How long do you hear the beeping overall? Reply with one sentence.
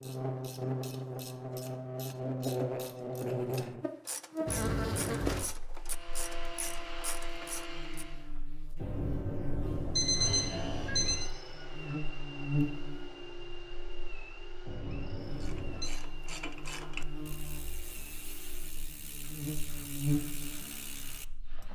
You can hear the beeping for 5 seconds altogether.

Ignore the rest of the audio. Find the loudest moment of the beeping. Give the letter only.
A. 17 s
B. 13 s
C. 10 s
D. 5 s
C.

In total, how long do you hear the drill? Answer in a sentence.
You can hear the drill for 14 seconds altogether.